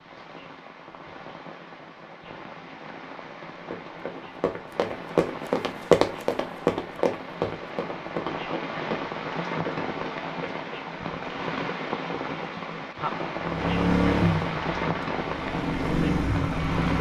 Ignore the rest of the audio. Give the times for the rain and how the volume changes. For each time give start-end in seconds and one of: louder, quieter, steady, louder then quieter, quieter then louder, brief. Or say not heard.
0.0-16.9 louder.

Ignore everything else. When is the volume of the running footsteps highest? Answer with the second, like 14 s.
6 s.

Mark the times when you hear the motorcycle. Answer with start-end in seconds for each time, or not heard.
13.4-16.9.